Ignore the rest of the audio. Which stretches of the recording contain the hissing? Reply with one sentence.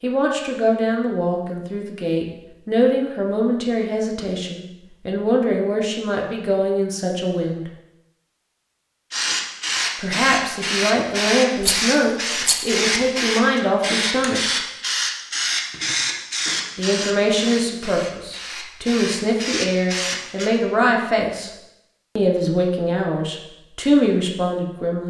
You can hear the hissing from 9.1 to 20.5 s.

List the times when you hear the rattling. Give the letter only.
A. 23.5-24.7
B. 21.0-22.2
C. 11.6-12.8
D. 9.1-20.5
C.